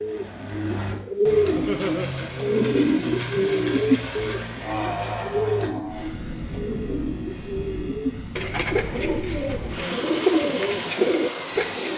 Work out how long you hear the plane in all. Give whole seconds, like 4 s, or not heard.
12 s.